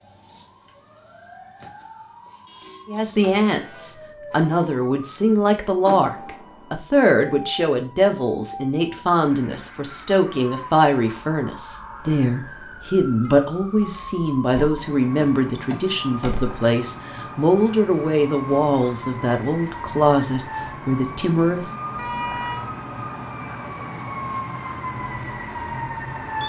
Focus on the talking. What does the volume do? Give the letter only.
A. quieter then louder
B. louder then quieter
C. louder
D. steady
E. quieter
D.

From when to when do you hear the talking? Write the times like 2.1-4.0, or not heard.
2.9-21.8.